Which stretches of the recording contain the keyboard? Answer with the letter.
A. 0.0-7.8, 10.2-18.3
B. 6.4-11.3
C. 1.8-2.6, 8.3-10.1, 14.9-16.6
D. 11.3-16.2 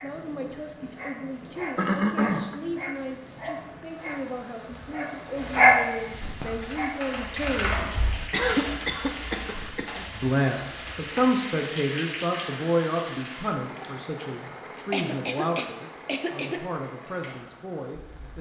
B.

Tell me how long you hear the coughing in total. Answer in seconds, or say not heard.
4 s.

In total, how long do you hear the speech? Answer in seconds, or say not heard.
16 s.